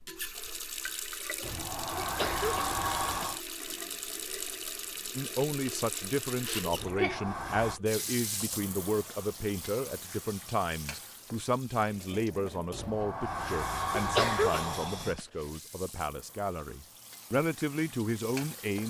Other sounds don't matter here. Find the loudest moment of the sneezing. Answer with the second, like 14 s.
14 s.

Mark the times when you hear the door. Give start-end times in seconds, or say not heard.
1.4-3.4, 6.7-7.8, 12.7-15.2.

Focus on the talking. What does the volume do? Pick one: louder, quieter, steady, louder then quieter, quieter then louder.
steady.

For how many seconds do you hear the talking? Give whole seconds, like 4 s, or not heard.
14 s.